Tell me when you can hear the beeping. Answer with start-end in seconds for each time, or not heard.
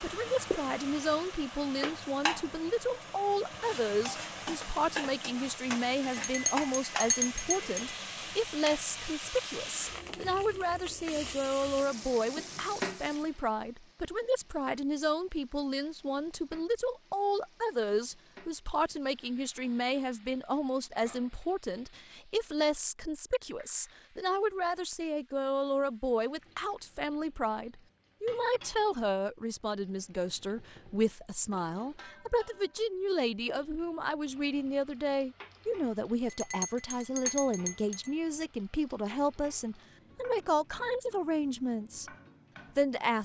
not heard.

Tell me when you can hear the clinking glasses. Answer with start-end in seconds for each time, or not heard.
6.2-8.0, 36.2-38.1.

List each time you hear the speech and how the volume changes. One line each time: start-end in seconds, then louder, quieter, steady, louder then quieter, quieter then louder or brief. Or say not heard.
0.0-42.1 steady
42.8-43.2 brief.